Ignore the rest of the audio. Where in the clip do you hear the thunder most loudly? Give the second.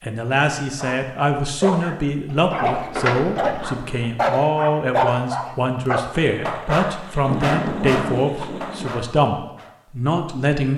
8 s.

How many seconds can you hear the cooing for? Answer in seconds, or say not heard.
not heard.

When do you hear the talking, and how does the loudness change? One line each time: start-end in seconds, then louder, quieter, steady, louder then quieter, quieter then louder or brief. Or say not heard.
0.0-10.7 steady.